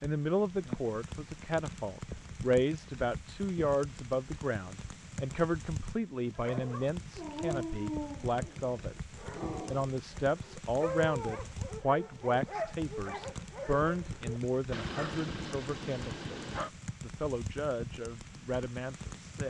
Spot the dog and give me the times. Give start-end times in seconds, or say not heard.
6.3-16.7.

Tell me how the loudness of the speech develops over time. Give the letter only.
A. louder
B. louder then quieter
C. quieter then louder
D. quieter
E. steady
D.